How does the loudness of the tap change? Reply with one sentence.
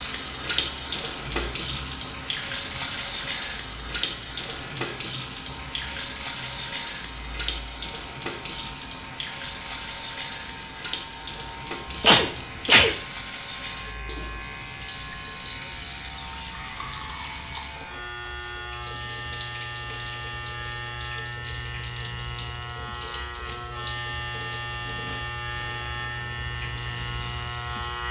The loudness of the tap goes down.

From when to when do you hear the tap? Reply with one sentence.
The tap can be heard from 0.0 to 27.9 s.